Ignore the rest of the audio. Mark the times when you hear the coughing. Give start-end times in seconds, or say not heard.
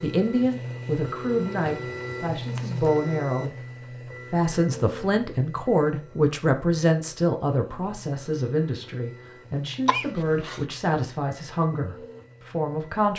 9.8-10.6.